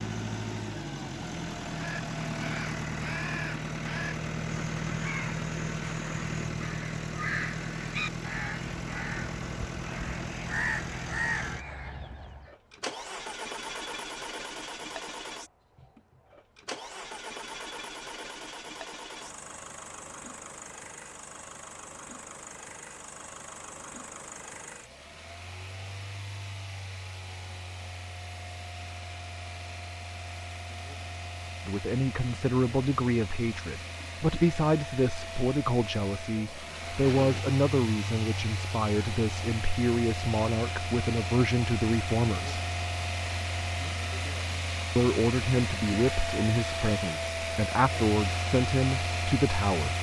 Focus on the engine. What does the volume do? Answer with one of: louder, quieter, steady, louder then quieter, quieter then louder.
quieter then louder.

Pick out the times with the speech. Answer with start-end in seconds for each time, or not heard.
31.6-42.6, 45.0-49.9.